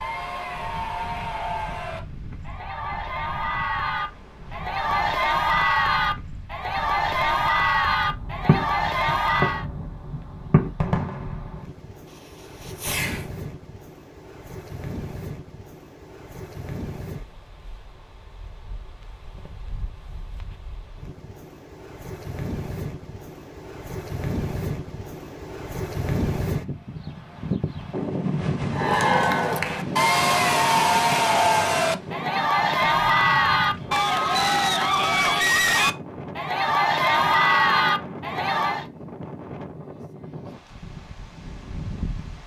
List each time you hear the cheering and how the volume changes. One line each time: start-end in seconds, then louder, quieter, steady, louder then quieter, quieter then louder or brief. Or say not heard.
0.0-9.7 louder
28.7-38.9 steady.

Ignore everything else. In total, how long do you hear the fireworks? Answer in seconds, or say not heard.
5 s.